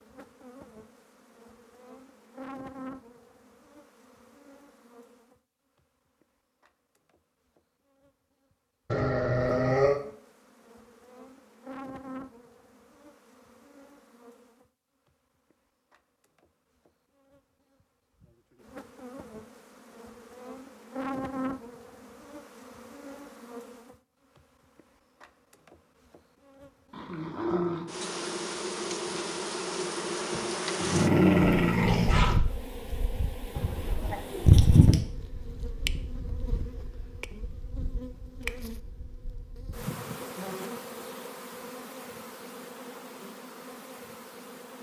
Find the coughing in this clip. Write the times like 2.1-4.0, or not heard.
33.5-35.0.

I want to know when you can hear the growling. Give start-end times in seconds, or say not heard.
8.9-10.0, 26.9-27.9, 30.3-32.4.